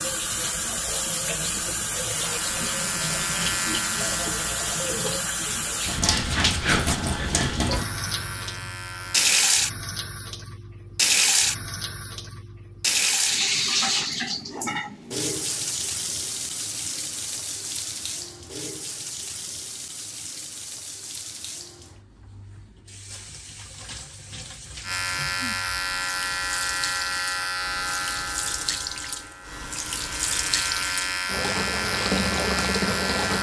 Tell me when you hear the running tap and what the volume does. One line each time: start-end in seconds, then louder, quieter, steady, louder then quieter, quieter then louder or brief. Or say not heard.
0.0-33.3 quieter then louder.